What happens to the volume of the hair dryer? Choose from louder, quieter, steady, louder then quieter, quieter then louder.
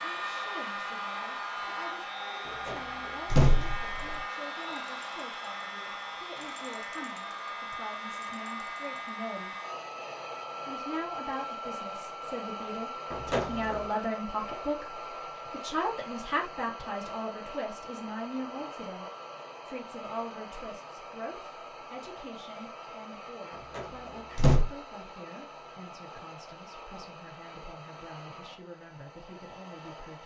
quieter.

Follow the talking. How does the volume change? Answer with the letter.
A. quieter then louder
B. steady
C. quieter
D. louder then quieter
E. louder
D.